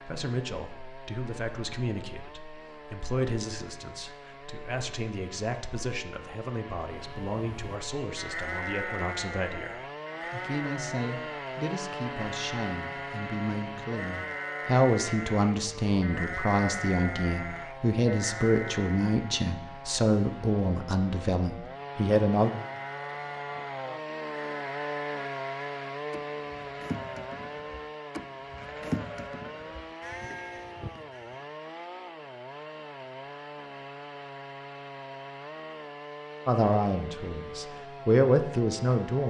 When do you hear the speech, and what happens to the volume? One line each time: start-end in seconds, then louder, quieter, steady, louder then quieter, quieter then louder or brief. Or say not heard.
0.0-22.5 louder
36.5-39.2 brief.